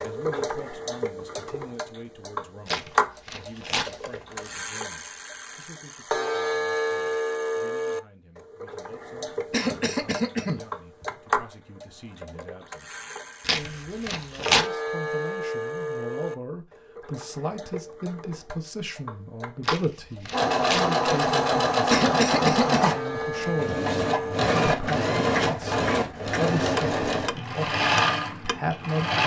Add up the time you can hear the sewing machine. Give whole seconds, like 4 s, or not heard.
9 s.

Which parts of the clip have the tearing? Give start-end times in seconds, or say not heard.
2.6-4.6, 13.4-14.7, 19.6-20.9.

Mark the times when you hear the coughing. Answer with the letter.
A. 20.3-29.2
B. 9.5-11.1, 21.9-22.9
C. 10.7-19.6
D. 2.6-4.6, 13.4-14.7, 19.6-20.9
B.